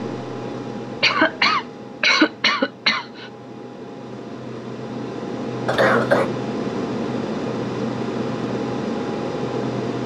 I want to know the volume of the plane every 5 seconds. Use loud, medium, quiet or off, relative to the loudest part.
medium, loud.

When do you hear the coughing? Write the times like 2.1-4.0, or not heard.
1.0-3.3, 5.7-6.3.